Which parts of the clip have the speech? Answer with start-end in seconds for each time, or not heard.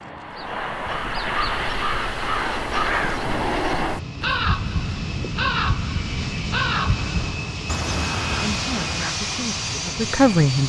8.4-10.6.